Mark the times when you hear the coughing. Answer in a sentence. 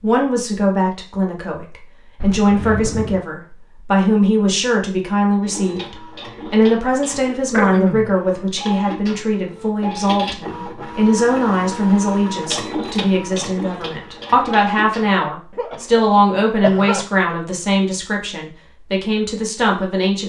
The coughing can be heard from 2.2 to 3.2 s, from 7.5 to 8.2 s and from 15.6 to 17.1 s.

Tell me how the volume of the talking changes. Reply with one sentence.
The volume of the talking stays about the same.